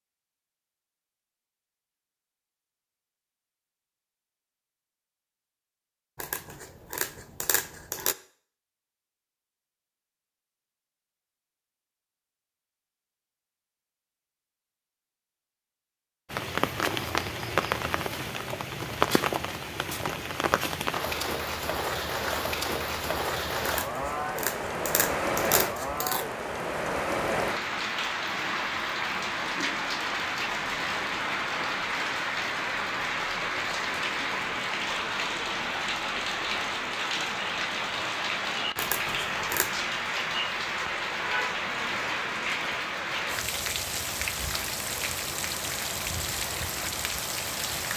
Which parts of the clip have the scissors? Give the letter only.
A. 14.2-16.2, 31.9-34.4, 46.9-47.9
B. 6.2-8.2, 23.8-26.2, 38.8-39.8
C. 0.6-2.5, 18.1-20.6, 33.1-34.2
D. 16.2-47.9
B.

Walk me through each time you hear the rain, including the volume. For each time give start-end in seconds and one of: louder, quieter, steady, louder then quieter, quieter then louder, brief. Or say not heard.
16.2-47.9 steady.